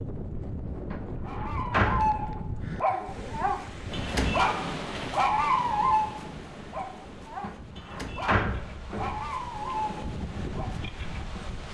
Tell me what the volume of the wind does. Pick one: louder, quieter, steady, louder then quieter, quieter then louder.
quieter then louder.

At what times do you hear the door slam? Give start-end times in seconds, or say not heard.
0.9-2.4, 7.4-9.3.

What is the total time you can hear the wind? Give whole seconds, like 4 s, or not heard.
12 s.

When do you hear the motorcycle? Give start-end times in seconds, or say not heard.
not heard.